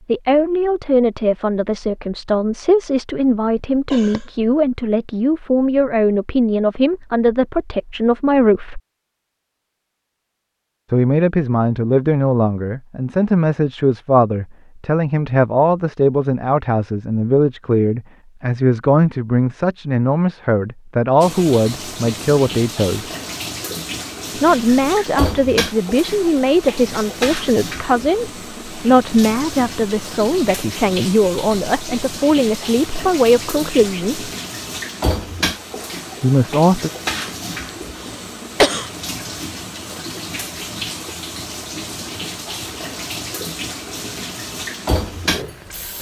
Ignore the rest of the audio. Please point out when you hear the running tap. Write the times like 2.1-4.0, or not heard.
21.2-45.9.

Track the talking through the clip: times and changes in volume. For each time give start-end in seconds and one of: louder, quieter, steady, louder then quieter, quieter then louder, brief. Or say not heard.
0.1-8.8 steady
10.9-23.1 steady
24.4-34.3 steady
36.2-36.9 brief.